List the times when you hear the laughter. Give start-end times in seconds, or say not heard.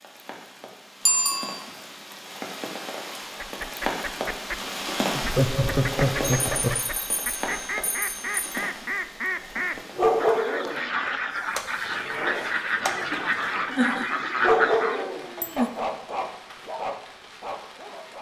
5.2-6.8, 13.8-15.7.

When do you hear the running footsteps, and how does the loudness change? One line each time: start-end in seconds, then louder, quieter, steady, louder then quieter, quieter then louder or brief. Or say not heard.
not heard.